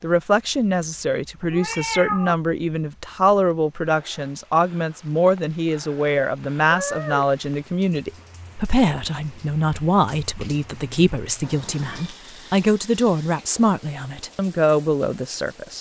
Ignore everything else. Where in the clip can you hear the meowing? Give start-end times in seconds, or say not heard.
1.4-2.4, 6.7-7.3, 11.4-12.2.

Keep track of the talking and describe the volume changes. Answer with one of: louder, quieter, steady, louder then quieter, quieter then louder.
steady.